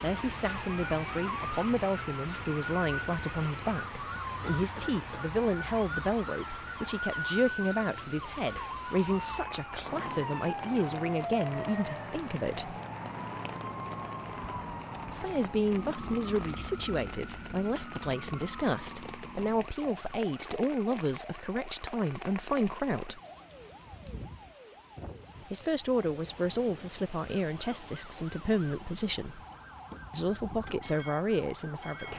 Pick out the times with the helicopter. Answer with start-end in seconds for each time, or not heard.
not heard.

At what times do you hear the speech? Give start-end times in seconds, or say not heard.
0.0-12.8, 15.1-23.2, 25.5-29.4, 30.1-32.1.